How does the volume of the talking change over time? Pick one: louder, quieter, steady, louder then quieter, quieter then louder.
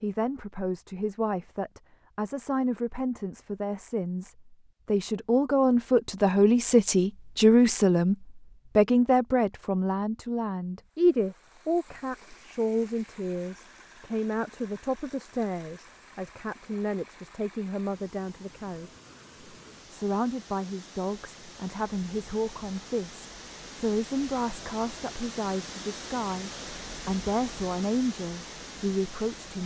louder then quieter.